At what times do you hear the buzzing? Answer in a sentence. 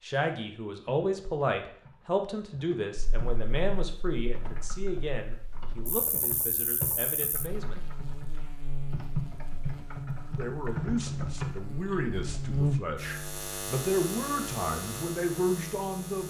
You can hear the buzzing from 3.0 to 16.2 s.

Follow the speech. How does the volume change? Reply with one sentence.
The loudness of the speech goes down, then up.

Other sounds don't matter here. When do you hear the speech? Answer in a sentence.
You can hear the speech from 0.0 to 7.8 s and from 10.3 to 16.2 s.